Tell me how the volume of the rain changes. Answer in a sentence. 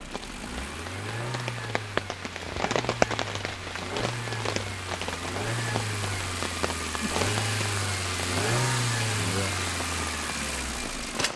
The loudness of the rain goes up, then down.